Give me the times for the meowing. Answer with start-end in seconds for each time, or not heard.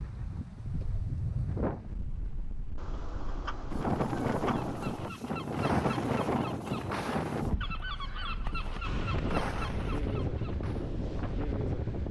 2.8-5.2.